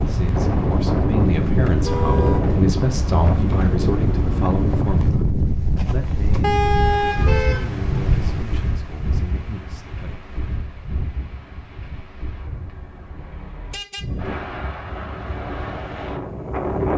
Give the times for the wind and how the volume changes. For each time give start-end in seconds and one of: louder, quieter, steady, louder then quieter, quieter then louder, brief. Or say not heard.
0.0-16.9 quieter then louder.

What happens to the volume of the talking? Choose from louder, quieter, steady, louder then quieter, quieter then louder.
quieter.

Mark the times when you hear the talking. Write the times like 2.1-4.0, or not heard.
0.0-5.2, 5.8-10.2.